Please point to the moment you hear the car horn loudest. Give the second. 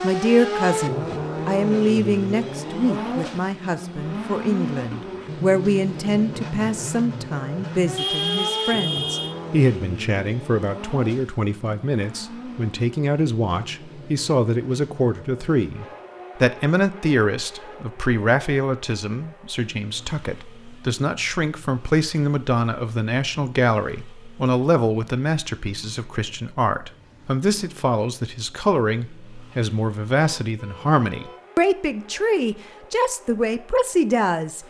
8 s.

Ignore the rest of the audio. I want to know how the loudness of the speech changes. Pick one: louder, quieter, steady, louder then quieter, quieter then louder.
steady.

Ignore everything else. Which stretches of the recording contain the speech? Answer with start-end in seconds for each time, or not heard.
0.0-34.6.